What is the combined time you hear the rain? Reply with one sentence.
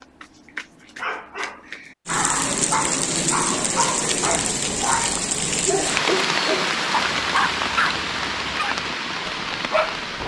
You can hear the rain for 8 seconds altogether.